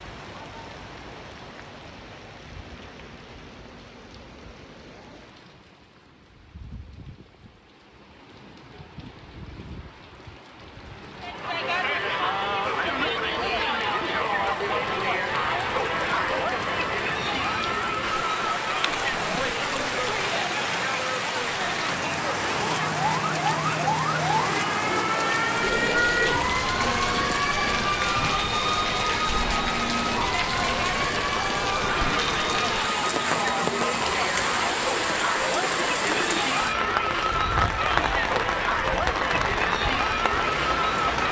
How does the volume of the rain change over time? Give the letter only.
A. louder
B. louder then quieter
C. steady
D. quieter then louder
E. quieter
A.